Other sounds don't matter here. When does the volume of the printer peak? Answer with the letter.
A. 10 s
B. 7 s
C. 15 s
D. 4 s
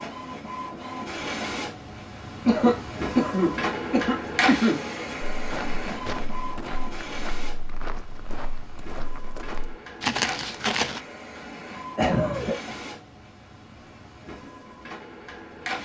D.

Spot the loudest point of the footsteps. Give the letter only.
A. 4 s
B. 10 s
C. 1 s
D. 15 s
B.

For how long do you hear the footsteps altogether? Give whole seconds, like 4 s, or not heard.
6 s.